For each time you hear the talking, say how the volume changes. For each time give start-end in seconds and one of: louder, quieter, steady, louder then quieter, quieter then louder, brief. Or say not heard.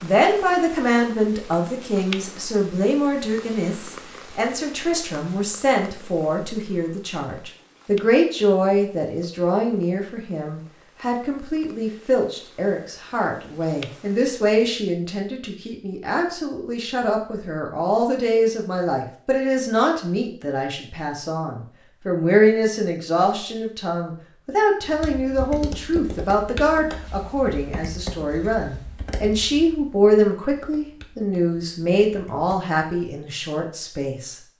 0.0-34.4 steady.